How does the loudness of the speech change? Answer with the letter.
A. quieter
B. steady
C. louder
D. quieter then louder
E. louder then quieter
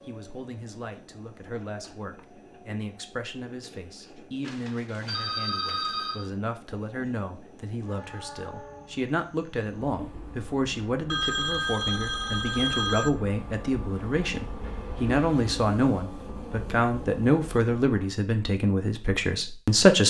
C.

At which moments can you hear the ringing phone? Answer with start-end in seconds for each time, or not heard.
4.4-6.3, 11.1-13.1.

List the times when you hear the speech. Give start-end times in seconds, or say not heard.
0.1-20.0.